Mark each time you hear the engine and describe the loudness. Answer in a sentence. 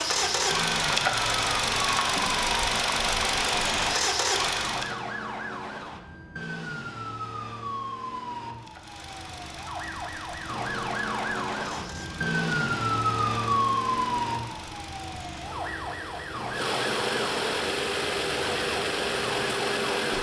The engine can be heard from 0.0 to 5.0 s, at a steady volume; and from 8.5 to 20.1 s, getting louder.